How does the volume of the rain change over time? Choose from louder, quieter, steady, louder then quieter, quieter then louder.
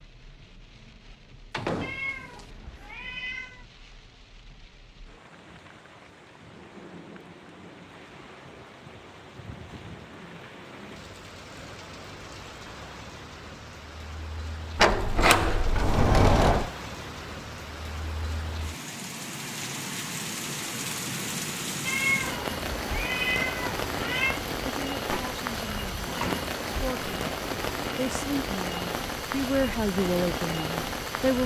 louder.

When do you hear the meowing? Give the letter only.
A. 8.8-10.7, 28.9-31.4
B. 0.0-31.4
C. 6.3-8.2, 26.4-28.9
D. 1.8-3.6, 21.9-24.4
D.